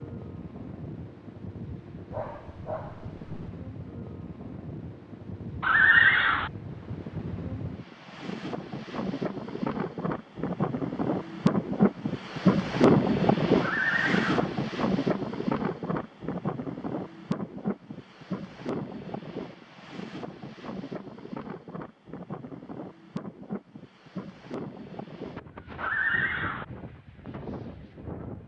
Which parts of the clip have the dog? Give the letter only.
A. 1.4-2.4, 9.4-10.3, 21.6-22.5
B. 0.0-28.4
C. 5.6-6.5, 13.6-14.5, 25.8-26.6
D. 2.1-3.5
D.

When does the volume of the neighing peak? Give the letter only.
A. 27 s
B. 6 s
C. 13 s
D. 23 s
B.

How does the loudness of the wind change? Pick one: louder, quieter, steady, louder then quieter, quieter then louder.
louder then quieter.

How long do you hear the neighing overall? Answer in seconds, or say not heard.
3 s.